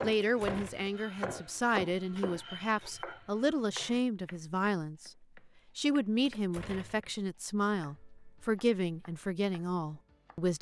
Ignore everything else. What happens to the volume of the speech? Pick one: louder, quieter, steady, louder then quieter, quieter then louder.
steady.